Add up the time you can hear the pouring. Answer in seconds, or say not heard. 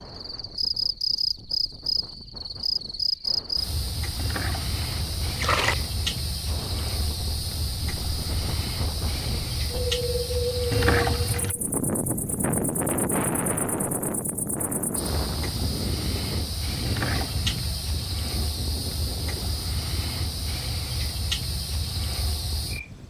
3 s.